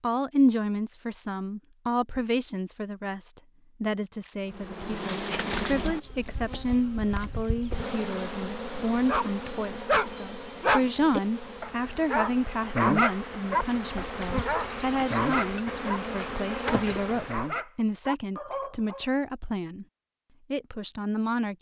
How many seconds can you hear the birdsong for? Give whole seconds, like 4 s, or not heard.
not heard.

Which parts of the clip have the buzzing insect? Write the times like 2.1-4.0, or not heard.
4.5-17.6.